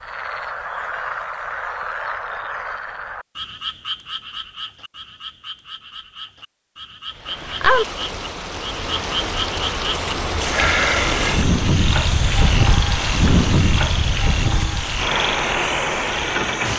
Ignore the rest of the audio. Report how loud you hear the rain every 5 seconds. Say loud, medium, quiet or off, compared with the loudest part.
off, loud, loud, loud.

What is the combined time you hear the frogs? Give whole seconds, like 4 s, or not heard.
17 s.